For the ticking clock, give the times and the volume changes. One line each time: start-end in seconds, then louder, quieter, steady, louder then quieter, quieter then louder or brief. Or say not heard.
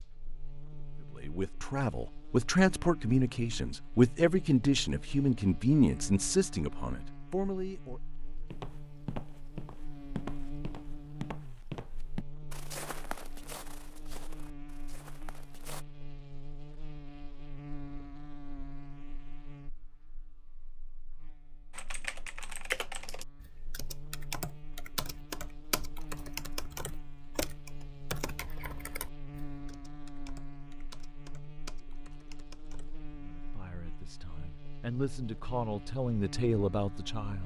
not heard.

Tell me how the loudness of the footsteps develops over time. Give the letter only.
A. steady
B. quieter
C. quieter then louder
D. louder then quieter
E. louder
B.